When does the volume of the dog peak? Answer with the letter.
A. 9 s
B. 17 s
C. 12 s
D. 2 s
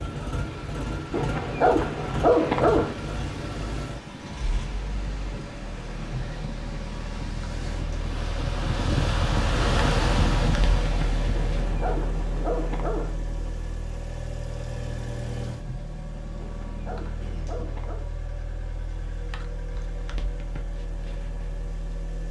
D.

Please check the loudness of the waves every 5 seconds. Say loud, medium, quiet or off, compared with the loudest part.
medium, loud, loud, off, off.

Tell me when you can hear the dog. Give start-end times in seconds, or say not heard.
1.1-3.0, 11.3-13.2, 16.4-18.1.